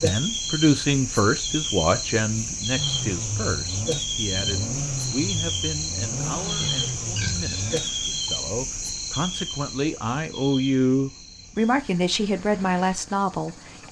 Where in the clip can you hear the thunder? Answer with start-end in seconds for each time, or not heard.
not heard.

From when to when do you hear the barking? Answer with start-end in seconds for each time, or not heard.
not heard.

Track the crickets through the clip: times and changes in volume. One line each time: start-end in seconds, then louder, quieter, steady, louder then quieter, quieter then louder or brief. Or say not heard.
0.0-13.8 quieter.